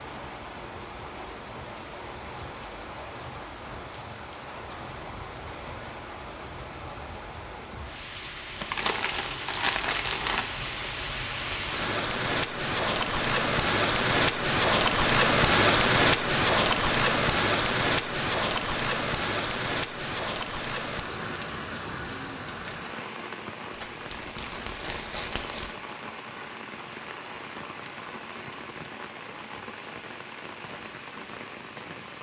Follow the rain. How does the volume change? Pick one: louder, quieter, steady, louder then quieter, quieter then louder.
louder then quieter.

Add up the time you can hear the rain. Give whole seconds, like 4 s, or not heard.
32 s.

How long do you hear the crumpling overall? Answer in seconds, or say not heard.
4 s.